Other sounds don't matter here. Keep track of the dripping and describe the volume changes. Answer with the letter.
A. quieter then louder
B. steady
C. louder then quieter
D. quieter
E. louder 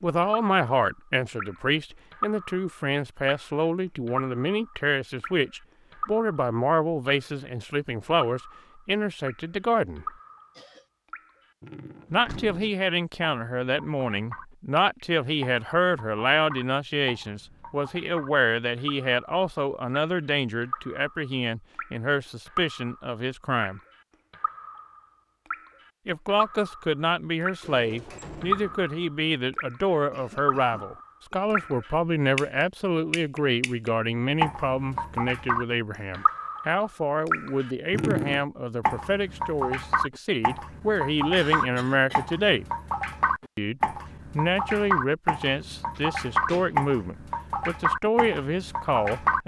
E.